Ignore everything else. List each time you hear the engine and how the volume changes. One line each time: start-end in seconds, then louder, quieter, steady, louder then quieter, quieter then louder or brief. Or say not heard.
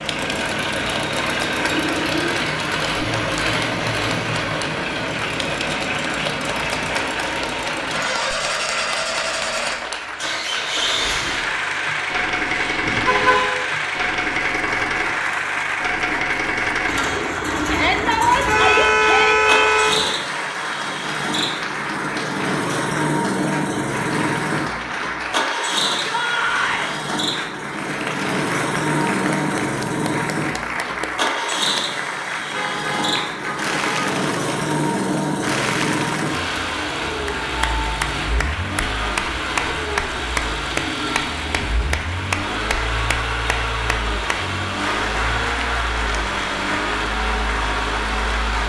0.0-48.6 steady.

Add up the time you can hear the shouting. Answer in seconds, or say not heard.
3 s.